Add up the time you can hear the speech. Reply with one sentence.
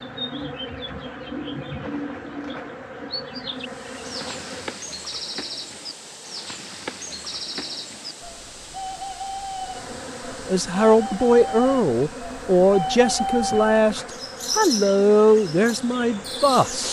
The speech can be heard for 6 seconds in total.